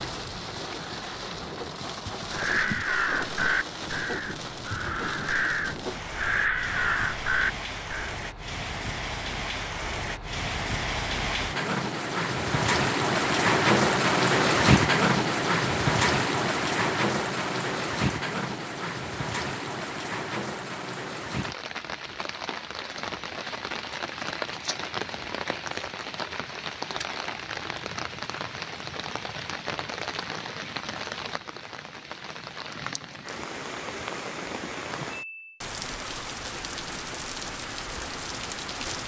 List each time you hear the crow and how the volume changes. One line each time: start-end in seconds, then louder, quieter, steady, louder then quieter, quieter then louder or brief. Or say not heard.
2.3-8.2 quieter then louder.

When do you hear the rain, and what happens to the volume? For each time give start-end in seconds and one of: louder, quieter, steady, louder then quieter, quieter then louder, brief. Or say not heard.
0.0-39.0 louder then quieter.